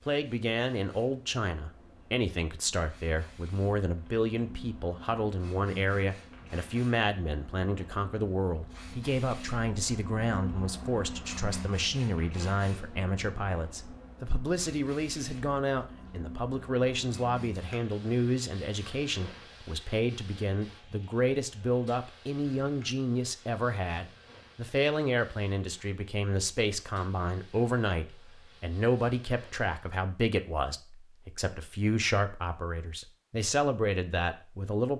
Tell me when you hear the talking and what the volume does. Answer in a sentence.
The talking can be heard from 0.1 to 34.9 s, at a steady volume.